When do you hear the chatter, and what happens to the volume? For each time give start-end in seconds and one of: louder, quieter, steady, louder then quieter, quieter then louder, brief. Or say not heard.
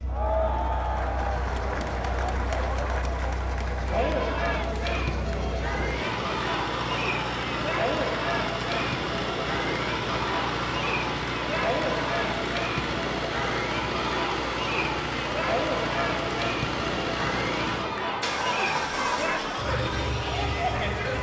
0.0-21.1 steady.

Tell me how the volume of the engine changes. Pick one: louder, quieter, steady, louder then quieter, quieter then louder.
louder.